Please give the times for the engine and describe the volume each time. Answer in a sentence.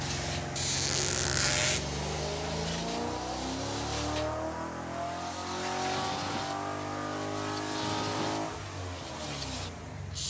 The engine can be heard from 0.0 to 10.2 s, at a steady volume.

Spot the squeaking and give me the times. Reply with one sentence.
You can hear the squeaking from 0.6 to 1.9 s.